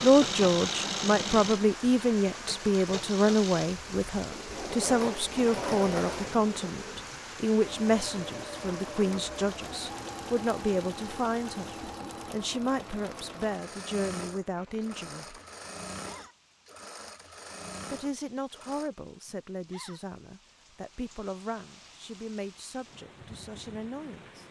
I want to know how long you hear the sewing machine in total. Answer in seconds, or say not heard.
19 s.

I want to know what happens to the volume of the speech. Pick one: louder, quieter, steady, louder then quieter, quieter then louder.
quieter.